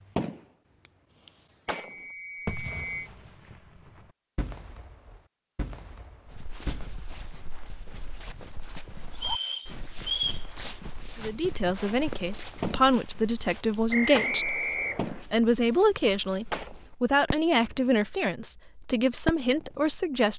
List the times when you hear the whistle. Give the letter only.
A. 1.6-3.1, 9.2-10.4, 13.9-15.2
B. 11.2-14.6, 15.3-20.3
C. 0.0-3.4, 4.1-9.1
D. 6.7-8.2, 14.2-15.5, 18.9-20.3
A.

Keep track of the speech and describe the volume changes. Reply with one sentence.
The volume of the speech stays about the same.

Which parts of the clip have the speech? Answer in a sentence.
You can hear the speech from 11.2 to 14.6 s and from 15.3 to 20.3 s.